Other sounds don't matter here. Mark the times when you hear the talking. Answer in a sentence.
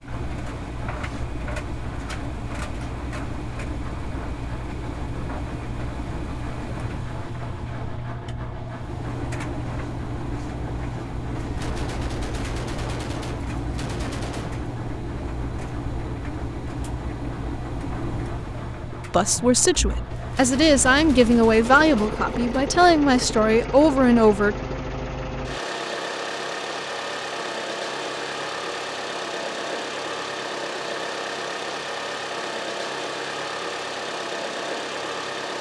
You can hear the talking from 19.1 to 24.6 s.